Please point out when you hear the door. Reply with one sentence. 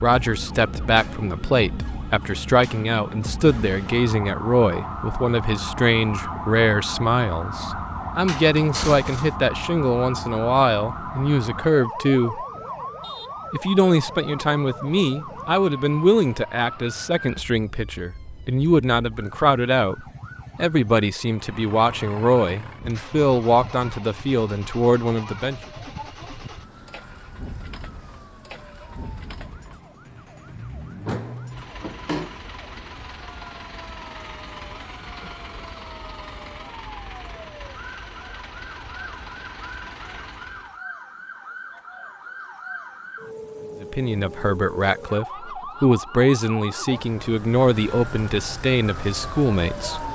The door can be heard from 8.2 to 9.3 s and from 31.1 to 32.4 s.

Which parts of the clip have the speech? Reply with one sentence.
The speech can be heard from 0.0 to 12.4 s, from 13.5 to 25.6 s and from 43.8 to 50.0 s.